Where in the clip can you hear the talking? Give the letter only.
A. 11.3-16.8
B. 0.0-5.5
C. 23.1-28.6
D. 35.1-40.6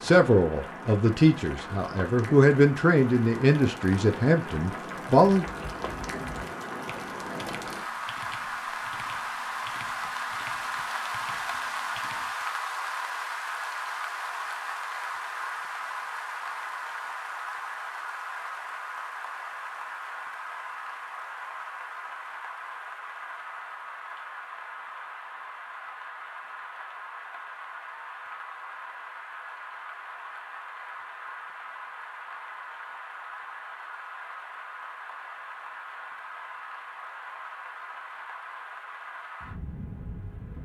B.